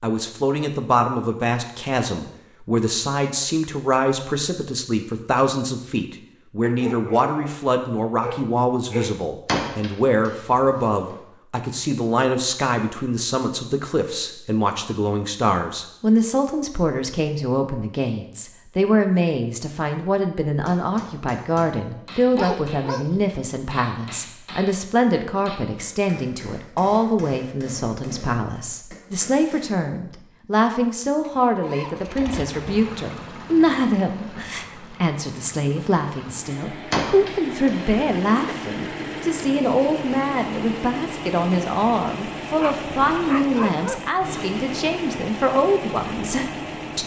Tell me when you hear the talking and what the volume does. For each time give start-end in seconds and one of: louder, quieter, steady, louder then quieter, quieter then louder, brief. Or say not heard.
0.0-47.0 steady.